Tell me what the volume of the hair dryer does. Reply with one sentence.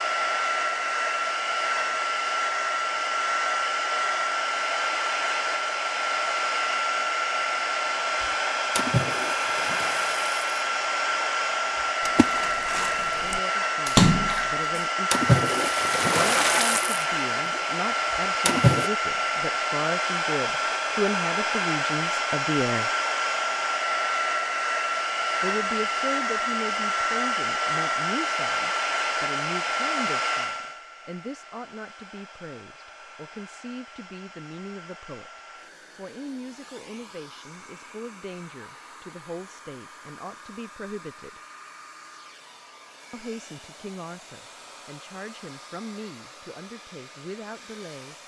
The loudness of the hair dryer goes down.